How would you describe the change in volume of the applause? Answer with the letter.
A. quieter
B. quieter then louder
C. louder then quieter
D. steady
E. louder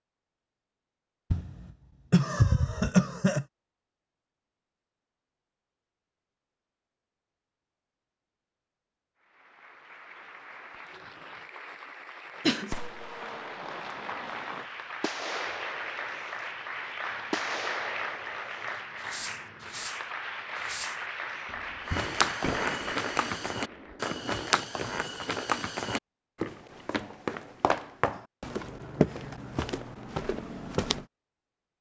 E.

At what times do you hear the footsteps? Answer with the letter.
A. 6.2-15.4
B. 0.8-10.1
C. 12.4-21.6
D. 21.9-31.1
D.